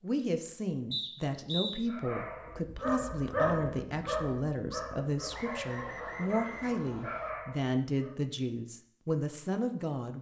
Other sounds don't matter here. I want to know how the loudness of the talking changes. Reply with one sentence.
The loudness of the talking stays about the same.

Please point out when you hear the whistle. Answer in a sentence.
You can hear the whistle from 0.9 to 1.8 s and from 5.3 to 7.3 s.